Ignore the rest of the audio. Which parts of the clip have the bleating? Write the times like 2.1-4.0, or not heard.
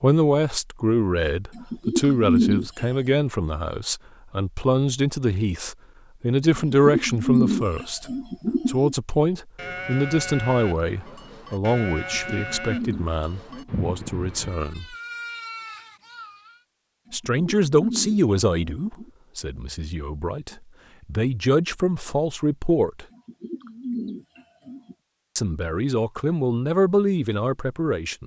9.6-16.6.